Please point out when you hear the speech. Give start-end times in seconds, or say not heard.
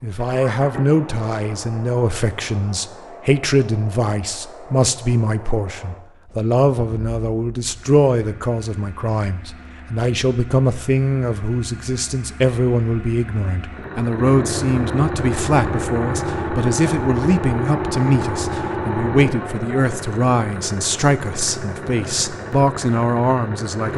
0.0-23.9.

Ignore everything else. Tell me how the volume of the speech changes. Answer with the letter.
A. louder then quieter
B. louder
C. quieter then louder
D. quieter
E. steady
E.